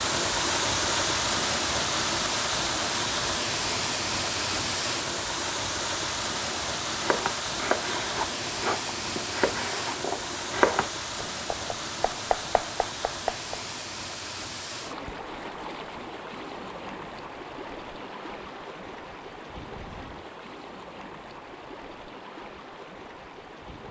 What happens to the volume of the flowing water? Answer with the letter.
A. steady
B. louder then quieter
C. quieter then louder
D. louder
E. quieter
E.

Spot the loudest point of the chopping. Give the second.
11 s.